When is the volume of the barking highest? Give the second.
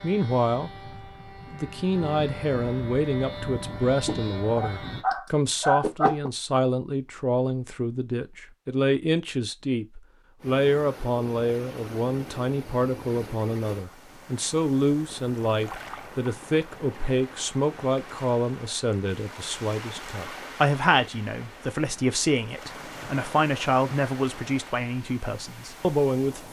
6 s.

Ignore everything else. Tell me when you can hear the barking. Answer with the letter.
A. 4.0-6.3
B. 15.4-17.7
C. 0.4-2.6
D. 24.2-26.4
A.